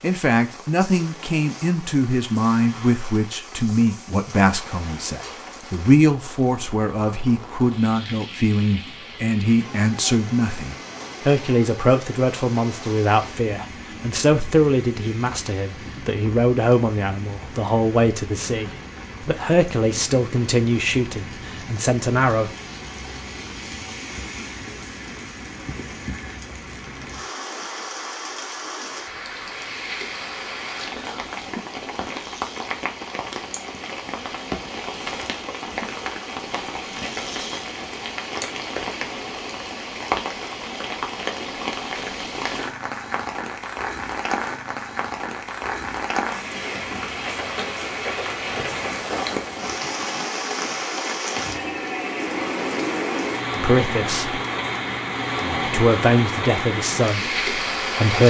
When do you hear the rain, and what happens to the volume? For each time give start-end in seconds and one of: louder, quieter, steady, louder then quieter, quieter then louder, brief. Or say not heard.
0.0-58.2 louder.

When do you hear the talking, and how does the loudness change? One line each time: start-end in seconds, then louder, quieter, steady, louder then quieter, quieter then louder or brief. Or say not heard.
0.0-22.5 steady
53.5-54.4 brief
55.6-58.2 brief.